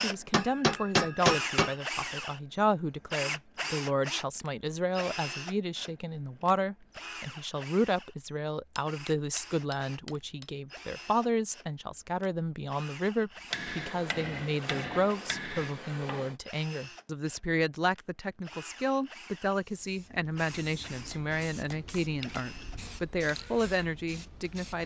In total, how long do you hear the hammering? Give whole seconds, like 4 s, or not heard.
8 s.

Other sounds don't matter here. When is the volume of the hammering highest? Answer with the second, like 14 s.
1 s.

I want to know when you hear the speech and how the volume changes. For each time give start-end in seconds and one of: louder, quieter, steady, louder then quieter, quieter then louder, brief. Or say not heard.
0.0-24.8 steady.